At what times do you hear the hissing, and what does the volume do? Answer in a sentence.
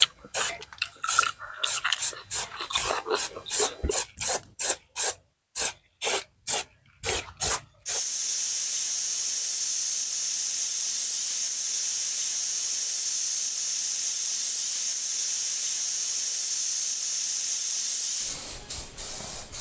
The hissing can be heard from 0.0 to 19.5 s, at a steady volume.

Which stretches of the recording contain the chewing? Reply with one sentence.
You can hear the chewing from 0.0 to 4.5 s.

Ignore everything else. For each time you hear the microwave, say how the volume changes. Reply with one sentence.
You can't hear the microwave here.